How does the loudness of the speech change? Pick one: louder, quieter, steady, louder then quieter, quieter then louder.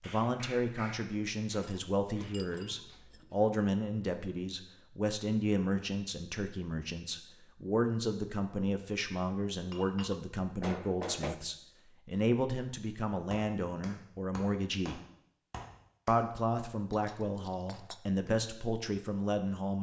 steady.